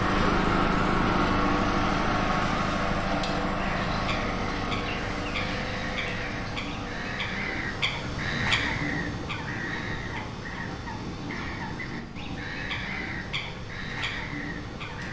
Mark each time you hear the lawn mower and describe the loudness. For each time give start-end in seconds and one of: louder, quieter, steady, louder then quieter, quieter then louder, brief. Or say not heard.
0.0-15.0 quieter.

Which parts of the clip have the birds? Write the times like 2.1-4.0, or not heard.
3.5-15.0.